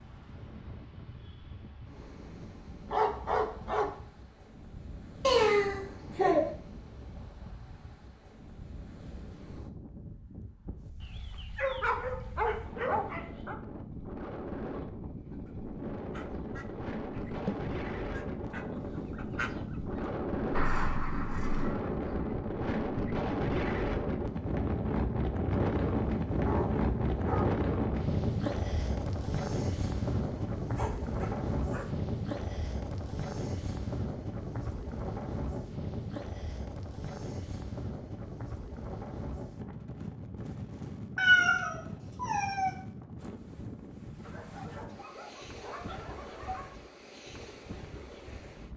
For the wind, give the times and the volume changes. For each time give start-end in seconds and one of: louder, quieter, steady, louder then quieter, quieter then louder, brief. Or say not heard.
0.0-48.7 louder then quieter.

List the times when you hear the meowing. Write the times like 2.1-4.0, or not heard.
5.2-6.5, 20.7-21.7, 41.1-42.7.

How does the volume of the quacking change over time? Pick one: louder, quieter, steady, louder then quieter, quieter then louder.
louder.